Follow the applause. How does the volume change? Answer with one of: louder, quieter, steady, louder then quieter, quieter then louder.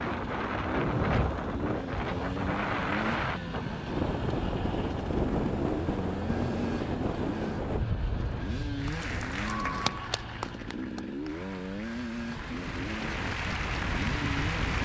quieter then louder.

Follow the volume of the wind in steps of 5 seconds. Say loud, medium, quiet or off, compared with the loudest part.
loud, loud, medium.